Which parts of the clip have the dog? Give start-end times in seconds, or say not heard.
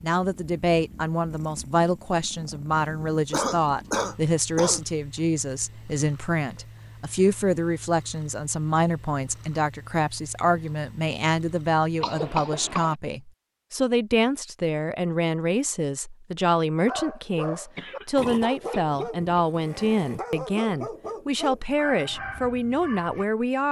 16.9-23.2.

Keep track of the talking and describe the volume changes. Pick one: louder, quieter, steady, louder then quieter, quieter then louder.
steady.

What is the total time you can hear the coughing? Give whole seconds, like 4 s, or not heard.
4 s.